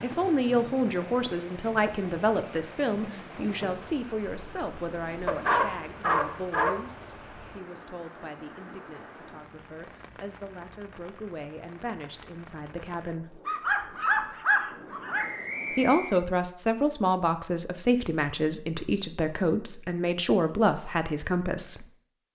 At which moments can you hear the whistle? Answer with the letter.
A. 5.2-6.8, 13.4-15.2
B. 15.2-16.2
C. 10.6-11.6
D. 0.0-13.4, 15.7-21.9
B.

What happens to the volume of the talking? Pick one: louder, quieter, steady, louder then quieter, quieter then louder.
quieter then louder.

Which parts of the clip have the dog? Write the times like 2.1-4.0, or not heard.
5.2-6.8, 13.4-15.2.